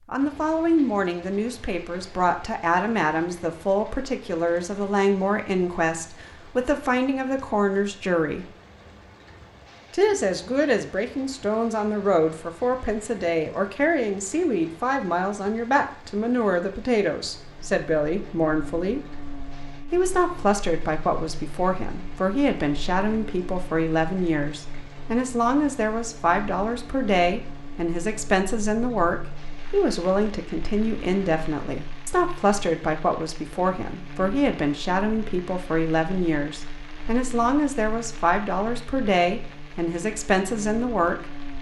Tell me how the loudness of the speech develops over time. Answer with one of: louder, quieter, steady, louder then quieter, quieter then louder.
steady.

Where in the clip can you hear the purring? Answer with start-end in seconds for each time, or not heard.
not heard.